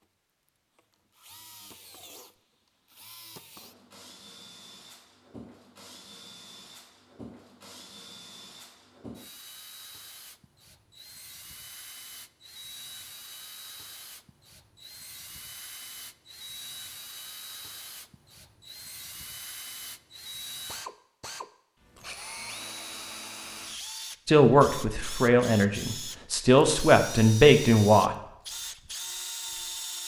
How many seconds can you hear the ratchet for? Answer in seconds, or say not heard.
not heard.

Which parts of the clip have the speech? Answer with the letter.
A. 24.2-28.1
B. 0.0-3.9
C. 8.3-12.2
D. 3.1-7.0
A.